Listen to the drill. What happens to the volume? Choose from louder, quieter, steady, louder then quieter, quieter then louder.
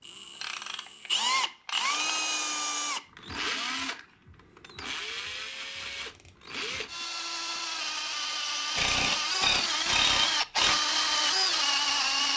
quieter then louder.